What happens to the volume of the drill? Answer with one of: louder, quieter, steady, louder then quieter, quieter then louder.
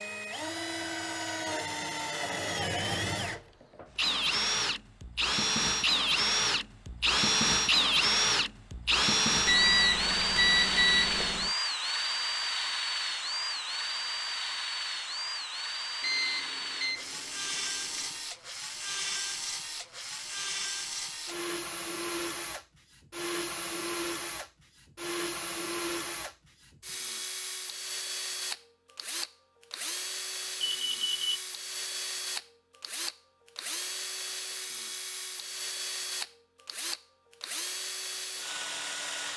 quieter.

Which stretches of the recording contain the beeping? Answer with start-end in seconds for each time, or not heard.
9.4-11.5, 16.0-18.1, 30.6-31.4.